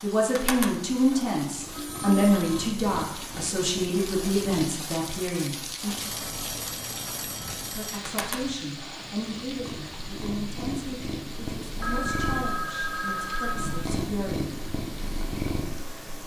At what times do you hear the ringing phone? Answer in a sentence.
You can hear the ringing phone from 1.7 to 2.8 s, from 6.0 to 8.0 s and from 11.8 to 13.8 s.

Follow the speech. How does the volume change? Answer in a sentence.
The loudness of the speech goes down.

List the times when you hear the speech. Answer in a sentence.
You can hear the speech from 0.0 to 6.0 s and from 7.6 to 14.5 s.